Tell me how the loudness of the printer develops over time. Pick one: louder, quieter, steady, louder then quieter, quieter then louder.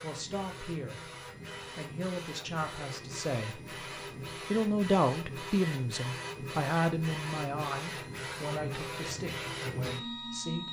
louder.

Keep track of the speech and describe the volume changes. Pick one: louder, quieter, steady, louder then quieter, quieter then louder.
louder then quieter.